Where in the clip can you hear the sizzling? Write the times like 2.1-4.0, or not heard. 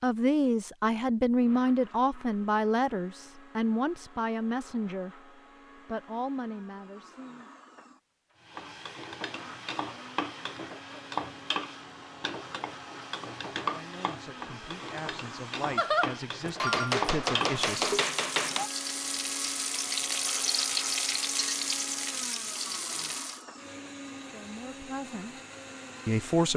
8.4-23.4.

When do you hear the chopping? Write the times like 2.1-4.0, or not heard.
15.8-18.7.